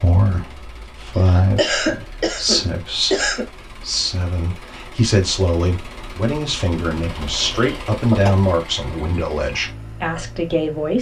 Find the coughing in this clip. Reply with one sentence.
You can hear the coughing from 1.1 to 3.5 s and from 7.2 to 8.3 s.